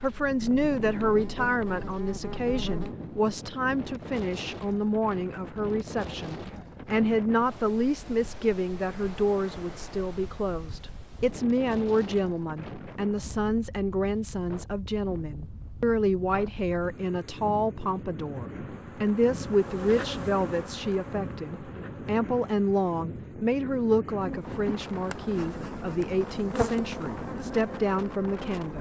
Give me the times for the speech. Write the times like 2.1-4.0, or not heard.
0.0-28.7.